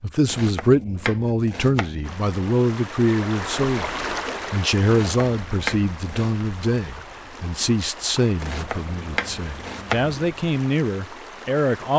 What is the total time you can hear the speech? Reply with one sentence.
You can hear the speech for 11 seconds altogether.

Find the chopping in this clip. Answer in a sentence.
You can hear the chopping from 0.2 to 2.2 s, from 4.8 to 6.5 s and from 8.4 to 10.2 s.